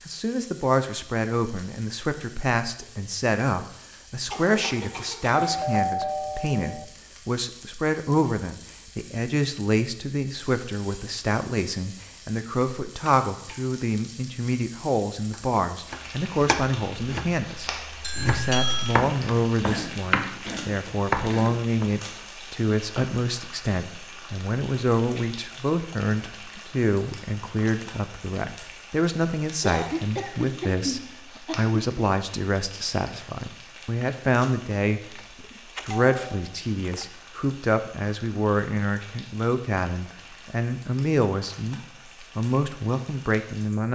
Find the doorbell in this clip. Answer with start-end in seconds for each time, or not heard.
5.4-6.8, 18.0-19.0, 35.1-37.0.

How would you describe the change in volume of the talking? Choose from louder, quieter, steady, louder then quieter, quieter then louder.
steady.